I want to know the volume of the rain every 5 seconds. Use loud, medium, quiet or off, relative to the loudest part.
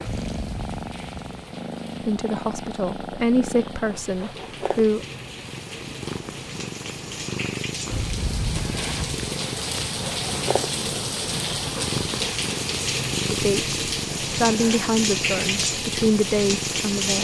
quiet, medium, loud, loud.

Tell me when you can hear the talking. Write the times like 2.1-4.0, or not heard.
2.0-5.0, 13.3-17.1.